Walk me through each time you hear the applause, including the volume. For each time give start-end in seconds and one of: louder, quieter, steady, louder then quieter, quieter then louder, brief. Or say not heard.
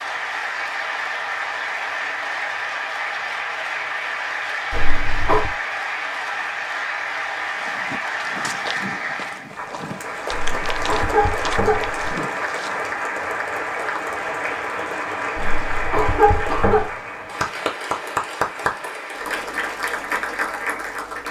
0.0-21.2 steady.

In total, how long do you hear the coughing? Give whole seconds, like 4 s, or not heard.
4 s.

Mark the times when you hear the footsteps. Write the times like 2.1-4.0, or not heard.
7.5-12.8.